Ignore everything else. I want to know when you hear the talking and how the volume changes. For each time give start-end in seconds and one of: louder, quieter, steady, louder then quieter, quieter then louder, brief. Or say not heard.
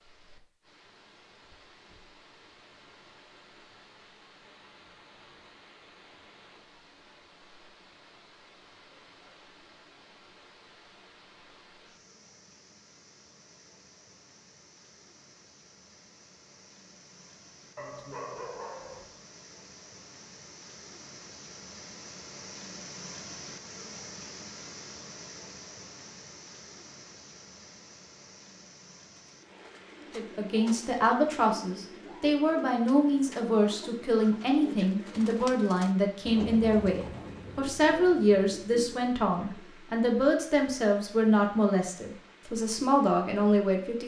30.1-44.0 steady.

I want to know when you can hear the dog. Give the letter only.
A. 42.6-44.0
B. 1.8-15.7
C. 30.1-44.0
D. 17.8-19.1
D.